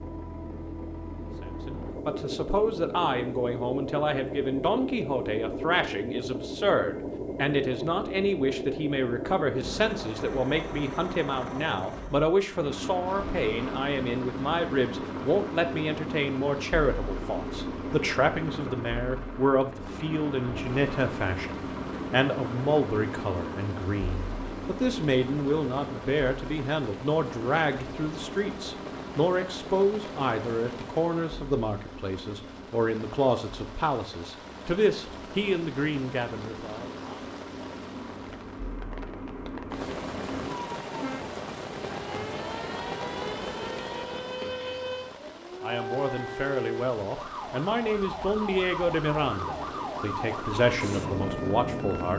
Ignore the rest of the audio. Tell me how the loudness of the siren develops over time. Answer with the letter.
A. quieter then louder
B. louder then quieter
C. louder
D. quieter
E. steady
E.